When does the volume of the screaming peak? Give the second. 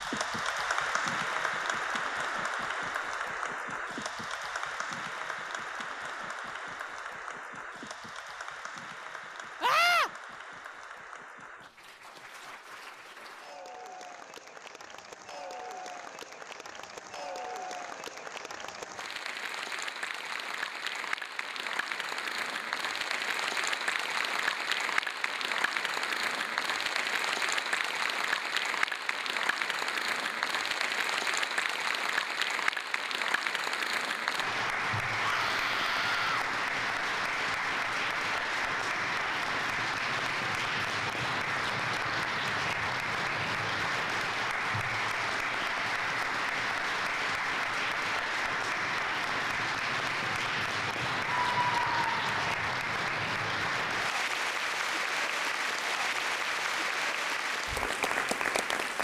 10 s.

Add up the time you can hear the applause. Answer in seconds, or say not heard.
59 s.